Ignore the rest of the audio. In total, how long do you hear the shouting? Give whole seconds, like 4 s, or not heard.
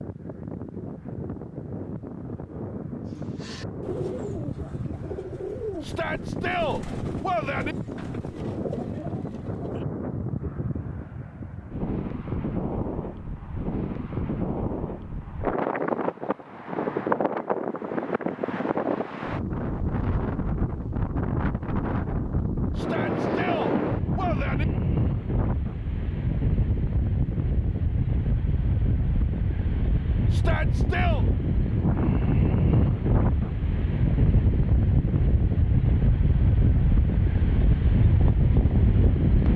5 s.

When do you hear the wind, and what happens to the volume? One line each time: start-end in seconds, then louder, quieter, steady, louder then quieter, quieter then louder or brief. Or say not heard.
0.0-39.5 louder.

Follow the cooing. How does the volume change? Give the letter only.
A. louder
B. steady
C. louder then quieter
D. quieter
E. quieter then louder
E.